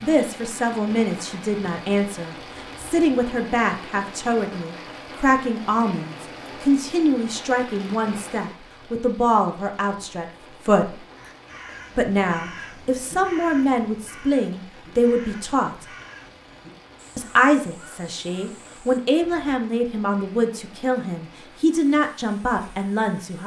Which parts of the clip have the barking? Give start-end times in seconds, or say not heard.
not heard.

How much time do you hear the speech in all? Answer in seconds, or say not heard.
21 s.